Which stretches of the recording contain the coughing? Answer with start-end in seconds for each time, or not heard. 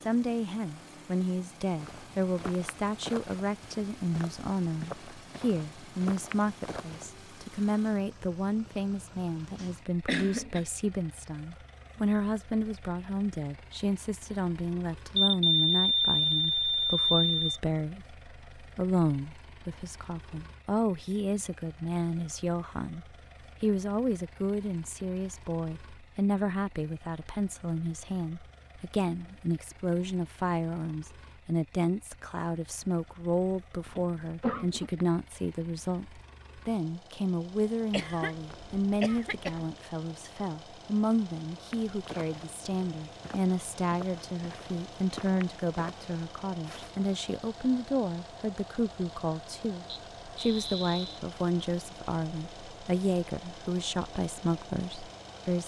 9.6-10.7, 33.9-34.9, 37.9-39.7.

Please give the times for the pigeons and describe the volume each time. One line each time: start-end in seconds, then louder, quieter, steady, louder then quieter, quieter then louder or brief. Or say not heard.
not heard.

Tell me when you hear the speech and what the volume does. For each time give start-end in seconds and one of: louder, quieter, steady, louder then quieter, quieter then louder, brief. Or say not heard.
0.0-55.6 steady.